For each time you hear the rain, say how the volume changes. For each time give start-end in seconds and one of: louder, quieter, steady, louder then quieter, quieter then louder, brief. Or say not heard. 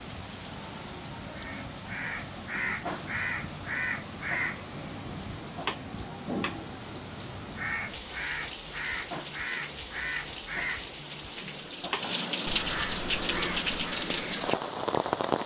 0.0-15.4 louder.